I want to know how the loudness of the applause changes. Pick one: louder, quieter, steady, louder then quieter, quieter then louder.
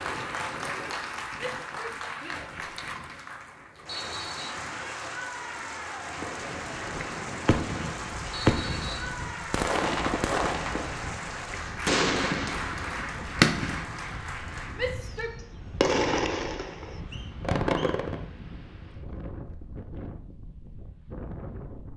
steady.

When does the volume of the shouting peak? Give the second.
15 s.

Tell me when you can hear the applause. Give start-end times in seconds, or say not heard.
0.0-15.2.